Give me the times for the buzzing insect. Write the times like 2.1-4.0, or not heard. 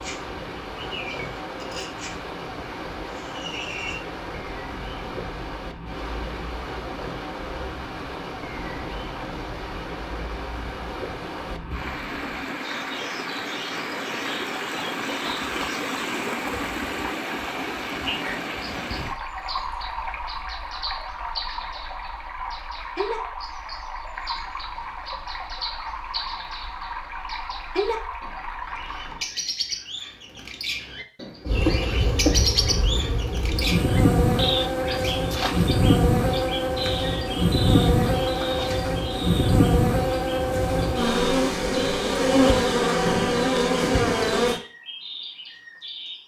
31.4-44.6.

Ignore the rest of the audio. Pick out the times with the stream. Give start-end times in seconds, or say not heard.
0.0-29.3.